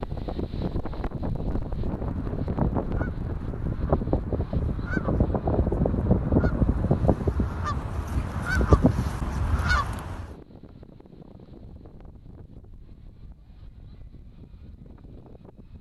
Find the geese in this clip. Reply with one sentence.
You can hear the geese from 1.6 to 10.2 s.